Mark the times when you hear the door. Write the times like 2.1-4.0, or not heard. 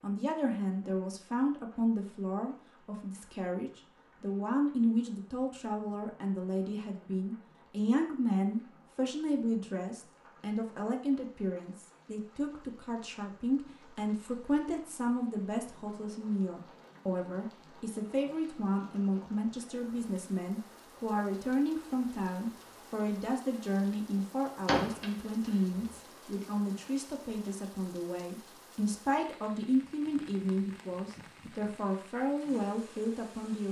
24.6-25.8.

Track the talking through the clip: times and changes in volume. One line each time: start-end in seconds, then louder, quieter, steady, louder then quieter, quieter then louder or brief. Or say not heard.
0.0-33.6 steady.